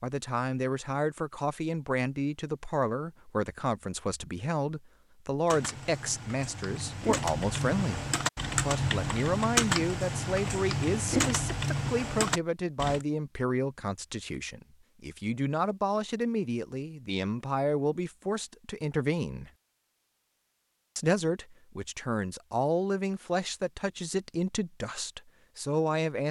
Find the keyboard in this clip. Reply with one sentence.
You can hear the keyboard from 5.5 to 13.1 s.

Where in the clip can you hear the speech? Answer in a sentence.
The speech can be heard from 0.0 to 8.1 s, from 8.7 to 19.5 s and from 20.9 to 26.2 s.